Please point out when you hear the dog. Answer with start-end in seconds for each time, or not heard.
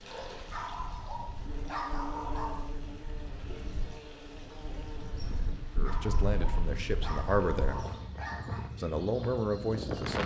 0.5-2.8, 5.8-8.7.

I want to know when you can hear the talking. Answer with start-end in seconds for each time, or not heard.
5.8-7.8, 8.8-10.2.